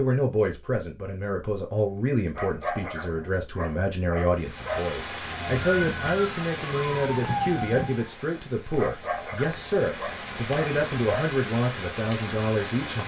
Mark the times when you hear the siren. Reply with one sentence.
The siren can be heard from 5.2 to 8.1 s.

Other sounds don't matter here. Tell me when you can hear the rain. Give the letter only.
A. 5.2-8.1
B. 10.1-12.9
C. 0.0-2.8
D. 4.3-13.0
D.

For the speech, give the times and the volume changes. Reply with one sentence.
The speech can be heard from 0.0 to 13.0 s, at a steady volume.